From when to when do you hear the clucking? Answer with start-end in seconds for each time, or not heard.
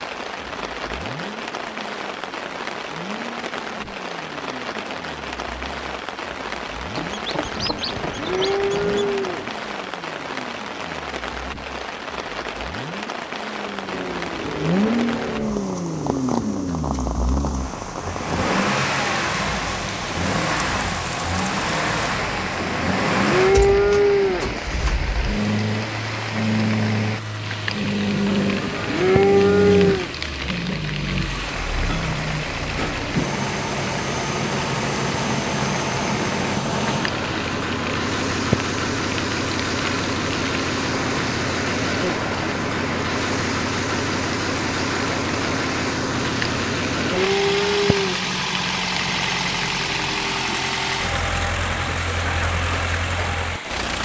7.0-9.2.